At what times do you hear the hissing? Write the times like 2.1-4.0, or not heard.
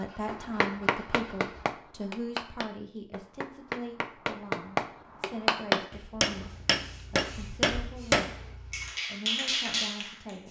6.4-10.4.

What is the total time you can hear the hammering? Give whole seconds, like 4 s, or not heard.
8 s.